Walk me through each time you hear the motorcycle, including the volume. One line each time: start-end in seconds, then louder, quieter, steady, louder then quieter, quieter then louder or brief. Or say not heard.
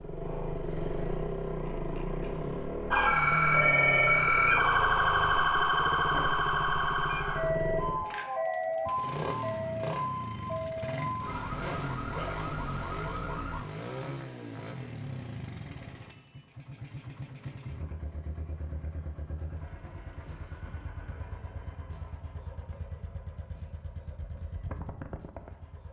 0.0-25.8 quieter.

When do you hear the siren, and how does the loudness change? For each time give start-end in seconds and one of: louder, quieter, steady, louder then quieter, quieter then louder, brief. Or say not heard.
2.9-13.7 quieter.